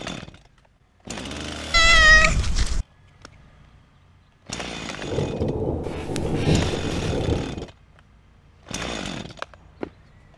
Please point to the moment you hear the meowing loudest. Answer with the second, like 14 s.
2 s.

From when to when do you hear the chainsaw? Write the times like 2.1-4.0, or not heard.
0.0-10.3.